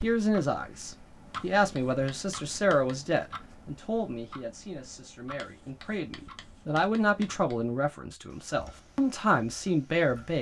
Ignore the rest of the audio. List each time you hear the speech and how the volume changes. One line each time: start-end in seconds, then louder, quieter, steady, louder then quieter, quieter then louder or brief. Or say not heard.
0.0-10.3 quieter then louder.